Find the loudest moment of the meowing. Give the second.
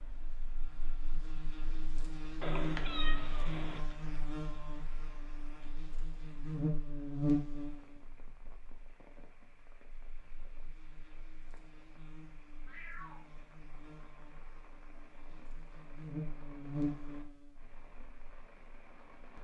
3 s.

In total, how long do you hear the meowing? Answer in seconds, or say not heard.
2 s.